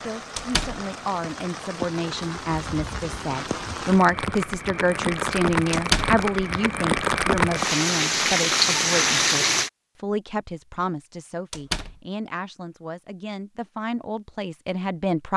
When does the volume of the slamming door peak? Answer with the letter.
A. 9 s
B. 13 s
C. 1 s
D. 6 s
D.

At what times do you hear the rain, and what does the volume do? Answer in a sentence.
You can hear the rain from 0.0 to 9.7 s, getting louder.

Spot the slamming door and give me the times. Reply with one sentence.
The slamming door can be heard from 0.3 to 0.8 s, from 5.7 to 6.2 s and from 11.5 to 12.0 s.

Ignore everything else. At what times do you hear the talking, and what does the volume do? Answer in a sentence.
You can hear the talking from 0.0 to 15.3 s, getting louder then quieter.